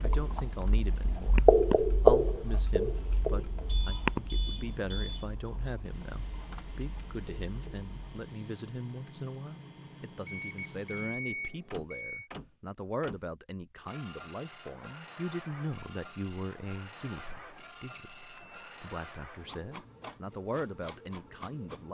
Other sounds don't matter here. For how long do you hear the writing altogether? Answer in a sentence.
You can hear the writing for 8 seconds altogether.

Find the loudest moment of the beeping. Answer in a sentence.
The volume of the beeping peaks at 11 seconds.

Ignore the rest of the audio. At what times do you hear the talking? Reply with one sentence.
The talking can be heard from 0.0 to 21.8 s.